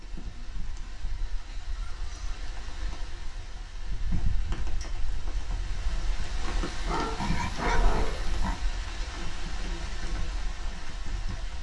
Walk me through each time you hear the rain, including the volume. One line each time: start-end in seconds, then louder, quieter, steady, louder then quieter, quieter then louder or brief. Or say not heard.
0.0-11.5 louder.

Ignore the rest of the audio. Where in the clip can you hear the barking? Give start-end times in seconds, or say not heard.
6.7-8.3.